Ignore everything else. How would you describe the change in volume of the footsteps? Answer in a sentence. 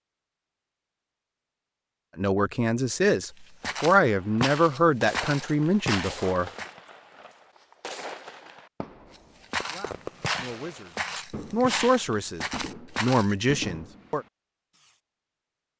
The loudness of the footsteps stays about the same.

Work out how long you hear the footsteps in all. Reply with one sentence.
You can hear the footsteps for 7 seconds altogether.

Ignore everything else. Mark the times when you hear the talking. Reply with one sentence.
The talking can be heard from 2.1 to 6.5 s and from 9.7 to 14.2 s.